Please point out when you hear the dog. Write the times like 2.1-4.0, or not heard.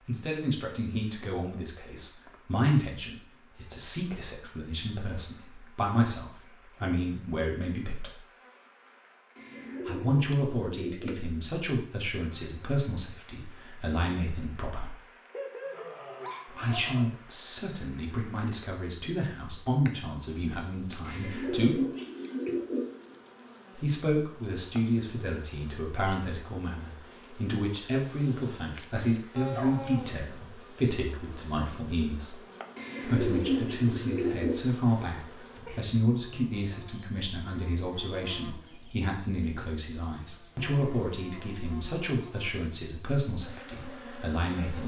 15.3-17.1, 29.4-30.2.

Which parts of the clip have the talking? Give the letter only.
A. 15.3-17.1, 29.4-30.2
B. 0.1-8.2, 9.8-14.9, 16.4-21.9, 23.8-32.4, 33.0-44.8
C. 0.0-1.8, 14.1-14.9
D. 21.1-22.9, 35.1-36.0
B.